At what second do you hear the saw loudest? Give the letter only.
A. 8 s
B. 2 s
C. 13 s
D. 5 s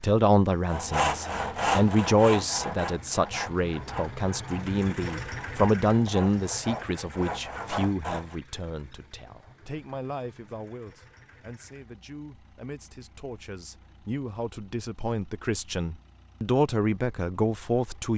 B.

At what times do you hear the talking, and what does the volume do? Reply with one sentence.
You can hear the talking from 0.0 to 18.1 s, getting quieter then louder.